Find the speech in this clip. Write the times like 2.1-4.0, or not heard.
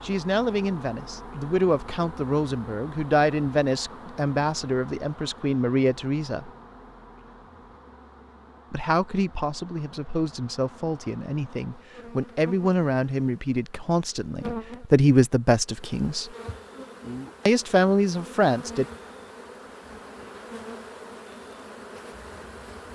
0.0-6.5, 8.7-16.3, 17.4-18.9.